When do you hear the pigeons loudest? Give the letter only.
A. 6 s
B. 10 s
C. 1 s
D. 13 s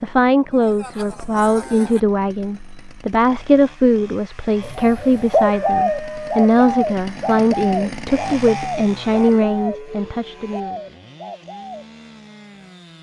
A.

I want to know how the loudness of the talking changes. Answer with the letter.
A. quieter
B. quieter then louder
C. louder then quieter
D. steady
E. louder
D.